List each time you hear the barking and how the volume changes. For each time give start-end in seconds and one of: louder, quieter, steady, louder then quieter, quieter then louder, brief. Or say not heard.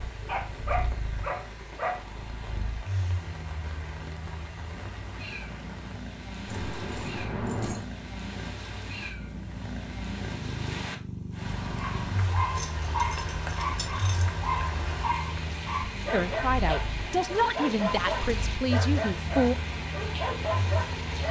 0.2-2.0 brief
11.8-21.2 steady.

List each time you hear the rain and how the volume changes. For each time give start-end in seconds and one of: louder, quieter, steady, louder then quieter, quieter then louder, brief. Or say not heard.
0.0-21.2 louder.